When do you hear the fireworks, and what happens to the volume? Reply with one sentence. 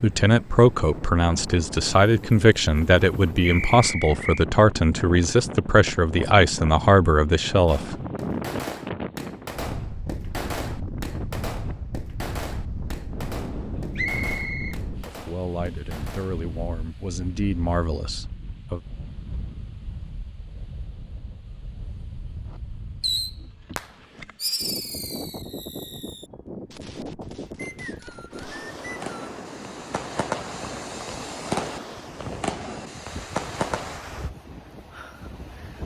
The fireworks can be heard from 7.7 to 16.4 s, getting quieter; and from 22.5 to 34.0 s, getting quieter then louder.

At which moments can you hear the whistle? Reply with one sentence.
You can hear the whistle from 3.4 to 4.5 s, from 13.9 to 14.8 s and from 27.6 to 29.2 s.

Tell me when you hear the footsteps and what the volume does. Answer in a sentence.
You can't hear the footsteps here.